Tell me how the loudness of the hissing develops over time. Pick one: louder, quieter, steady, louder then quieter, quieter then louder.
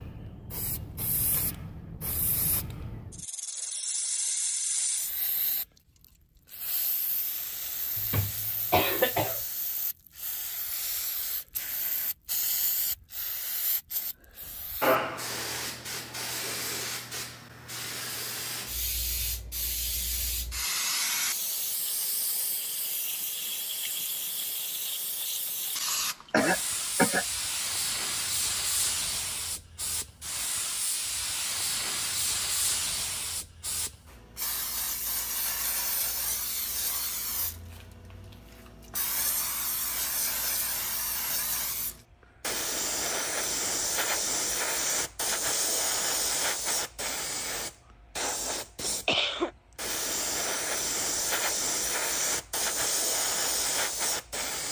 louder.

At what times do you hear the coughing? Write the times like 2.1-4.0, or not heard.
8.0-9.4, 26.3-27.2, 48.9-49.5.